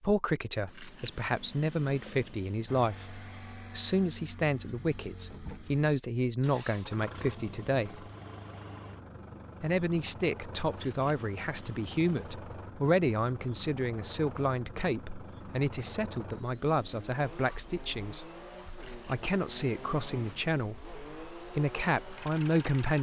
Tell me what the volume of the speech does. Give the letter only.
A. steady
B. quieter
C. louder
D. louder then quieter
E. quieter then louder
A.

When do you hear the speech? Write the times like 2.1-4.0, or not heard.
0.0-8.1, 9.6-18.2, 19.1-22.9.